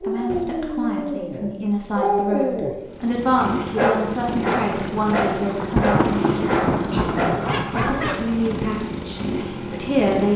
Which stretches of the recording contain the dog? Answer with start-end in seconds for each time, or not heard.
0.0-2.9, 3.8-8.2.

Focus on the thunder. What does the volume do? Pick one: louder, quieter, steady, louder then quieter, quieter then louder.
louder then quieter.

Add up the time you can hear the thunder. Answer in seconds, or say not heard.
4 s.